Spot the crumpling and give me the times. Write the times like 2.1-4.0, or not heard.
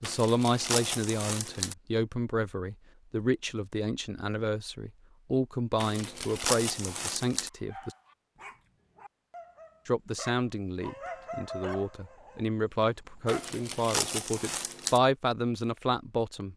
0.0-1.8, 5.8-7.5, 13.2-15.0.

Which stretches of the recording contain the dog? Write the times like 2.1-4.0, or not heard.
7.5-13.6.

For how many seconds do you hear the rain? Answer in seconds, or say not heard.
not heard.